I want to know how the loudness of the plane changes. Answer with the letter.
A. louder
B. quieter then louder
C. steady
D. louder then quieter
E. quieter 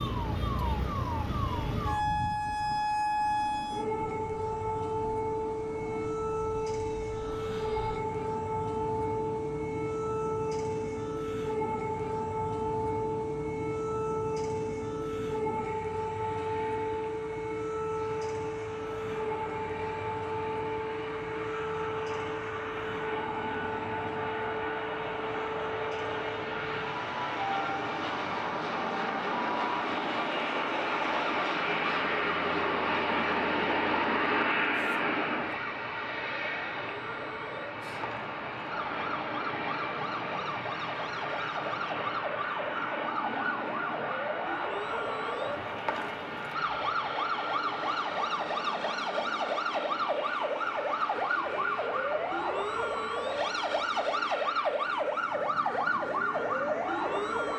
D.